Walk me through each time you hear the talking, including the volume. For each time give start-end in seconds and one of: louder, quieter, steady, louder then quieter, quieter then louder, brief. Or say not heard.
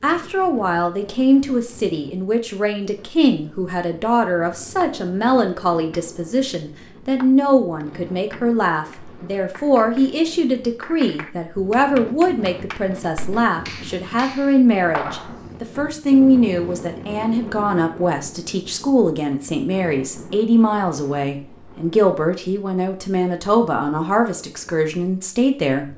0.0-25.9 steady.